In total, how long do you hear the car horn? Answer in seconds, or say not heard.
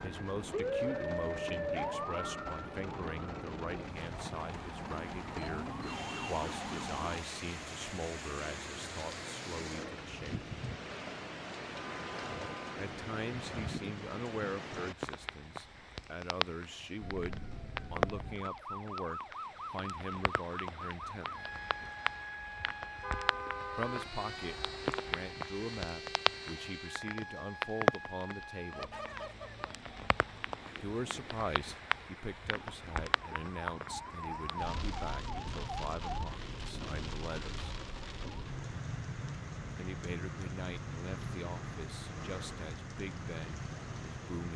2 s.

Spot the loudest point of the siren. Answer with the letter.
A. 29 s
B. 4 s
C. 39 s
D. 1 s
D.